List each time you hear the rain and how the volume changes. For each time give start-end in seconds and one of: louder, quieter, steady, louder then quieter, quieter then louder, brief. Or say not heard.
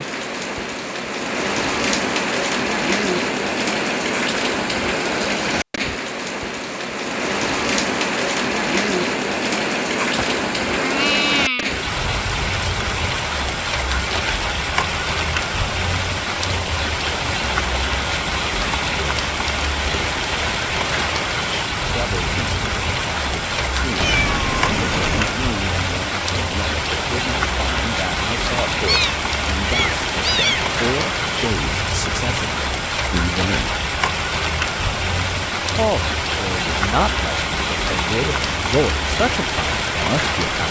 0.0-40.6 steady.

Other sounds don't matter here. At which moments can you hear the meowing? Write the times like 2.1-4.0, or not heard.
10.1-11.7, 24.0-25.4, 28.9-30.6.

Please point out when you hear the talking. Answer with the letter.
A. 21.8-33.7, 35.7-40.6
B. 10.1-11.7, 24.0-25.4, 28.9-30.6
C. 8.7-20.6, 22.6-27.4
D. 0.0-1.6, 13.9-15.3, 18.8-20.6
A.